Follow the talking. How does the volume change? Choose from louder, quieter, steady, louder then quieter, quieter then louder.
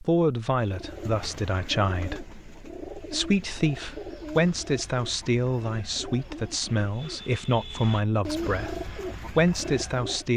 steady.